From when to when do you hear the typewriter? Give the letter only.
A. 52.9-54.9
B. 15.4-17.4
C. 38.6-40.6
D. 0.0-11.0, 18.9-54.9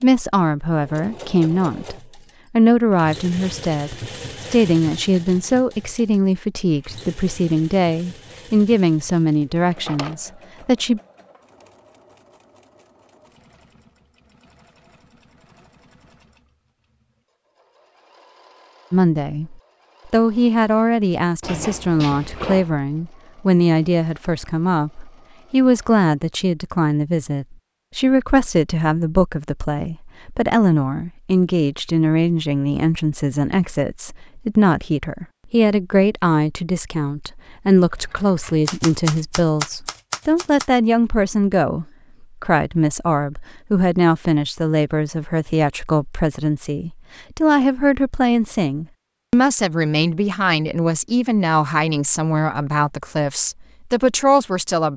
C.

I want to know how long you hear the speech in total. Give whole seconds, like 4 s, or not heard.
47 s.